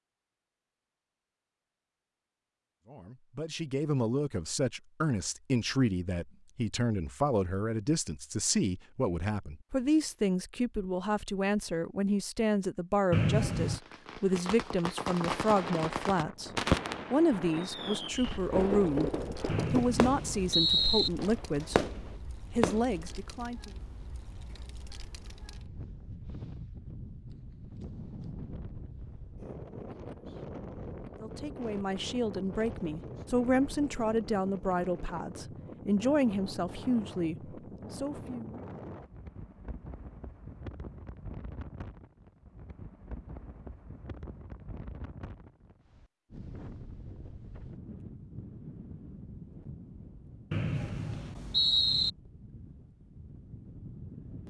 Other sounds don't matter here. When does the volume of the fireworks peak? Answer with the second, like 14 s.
17 s.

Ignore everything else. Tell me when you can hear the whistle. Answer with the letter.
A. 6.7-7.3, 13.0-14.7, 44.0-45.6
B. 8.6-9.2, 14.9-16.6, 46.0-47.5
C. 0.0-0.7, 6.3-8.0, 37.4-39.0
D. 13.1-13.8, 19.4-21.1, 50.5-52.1
D.